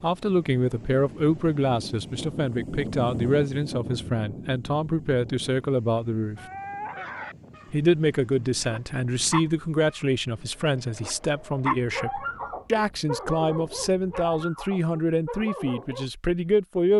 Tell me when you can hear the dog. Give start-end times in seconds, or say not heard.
6.3-16.1.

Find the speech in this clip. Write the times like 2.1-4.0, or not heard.
0.0-6.4, 7.7-16.9.